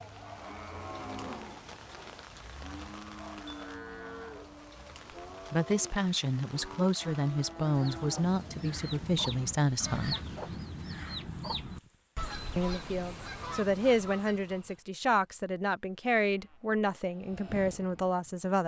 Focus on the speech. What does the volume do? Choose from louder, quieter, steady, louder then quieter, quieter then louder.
steady.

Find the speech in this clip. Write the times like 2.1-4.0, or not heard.
5.5-10.2, 12.6-18.6.